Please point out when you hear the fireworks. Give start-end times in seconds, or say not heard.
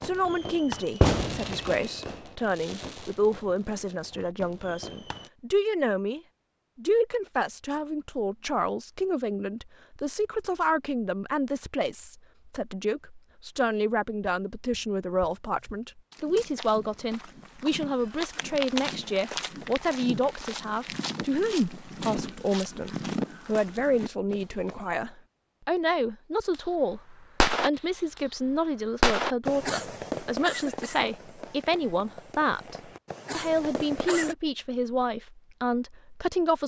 0.0-5.3, 26.5-34.4.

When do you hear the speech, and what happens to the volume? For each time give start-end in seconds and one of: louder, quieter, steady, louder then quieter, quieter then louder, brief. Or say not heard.
0.0-36.6 steady.